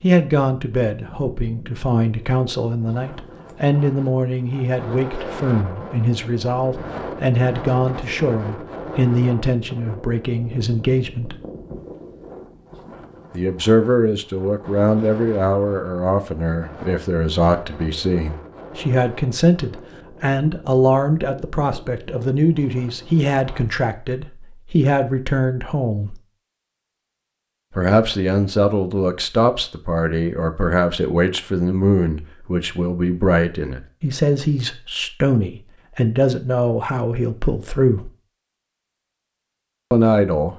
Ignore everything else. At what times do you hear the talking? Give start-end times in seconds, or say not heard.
0.0-11.3, 13.3-26.2, 27.8-38.1, 39.9-40.5.